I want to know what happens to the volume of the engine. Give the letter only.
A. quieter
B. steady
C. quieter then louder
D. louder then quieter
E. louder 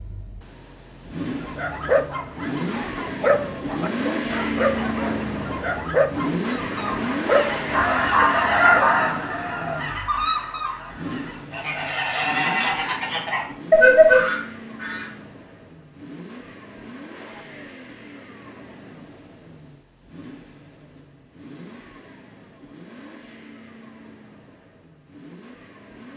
A.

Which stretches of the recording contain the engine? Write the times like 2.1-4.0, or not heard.
0.0-26.1.